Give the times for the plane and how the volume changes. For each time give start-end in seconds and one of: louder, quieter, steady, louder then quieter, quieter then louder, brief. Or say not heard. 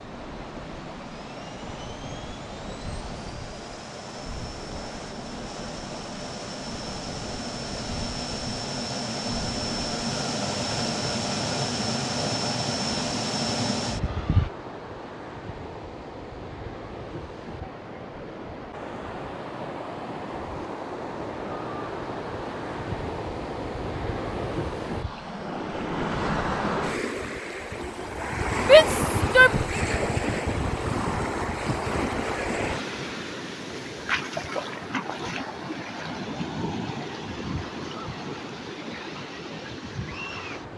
0.0-14.5 louder.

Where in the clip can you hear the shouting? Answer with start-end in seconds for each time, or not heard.
28.6-29.6.